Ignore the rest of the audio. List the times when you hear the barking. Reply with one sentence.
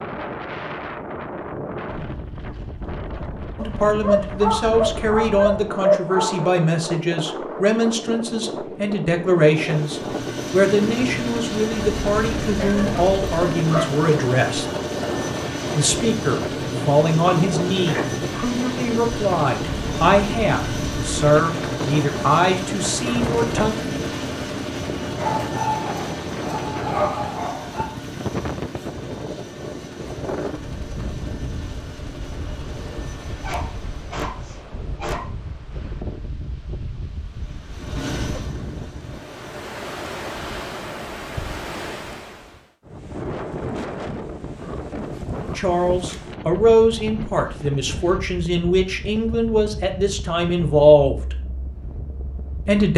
The barking can be heard from 3.5 to 6.5 s, from 12.6 to 13.9 s, from 25.1 to 27.9 s, from 33.4 to 35.3 s and from 44.5 to 46.2 s.